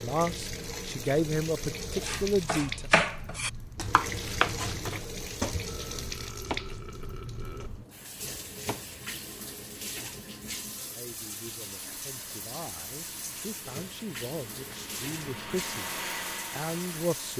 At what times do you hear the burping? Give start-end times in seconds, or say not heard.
5.7-7.7.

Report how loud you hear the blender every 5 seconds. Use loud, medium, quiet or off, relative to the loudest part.
off, off, quiet, loud.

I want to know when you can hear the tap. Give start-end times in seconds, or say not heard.
0.0-17.3.